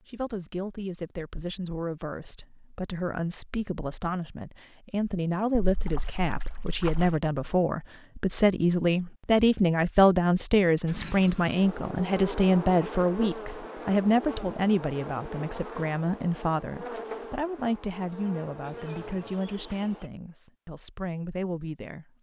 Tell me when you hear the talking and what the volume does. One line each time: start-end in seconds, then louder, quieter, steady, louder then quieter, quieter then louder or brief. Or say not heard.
0.1-22.1 louder then quieter.